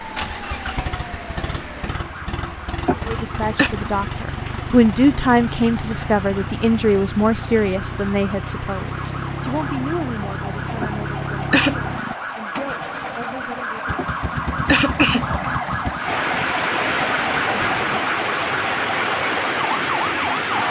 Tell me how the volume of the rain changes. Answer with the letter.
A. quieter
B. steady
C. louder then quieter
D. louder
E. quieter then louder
D.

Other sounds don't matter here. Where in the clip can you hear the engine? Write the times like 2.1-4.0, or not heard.
0.0-18.1.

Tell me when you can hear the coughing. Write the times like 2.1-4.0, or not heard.
2.9-3.7, 10.8-11.8, 13.9-15.3.